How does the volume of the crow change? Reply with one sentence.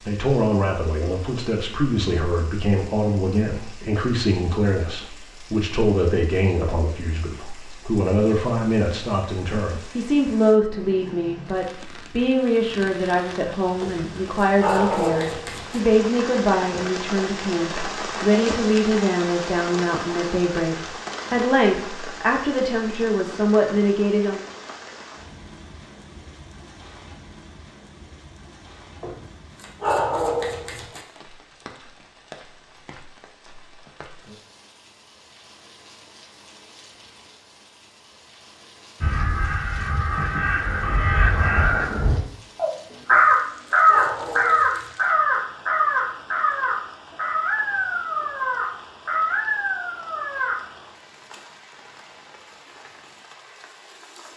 The loudness of the crow goes up, then down.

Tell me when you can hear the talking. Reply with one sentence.
You can hear the talking from 0.1 to 24.4 s.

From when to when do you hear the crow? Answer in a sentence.
The crow can be heard from 39.0 to 50.5 s.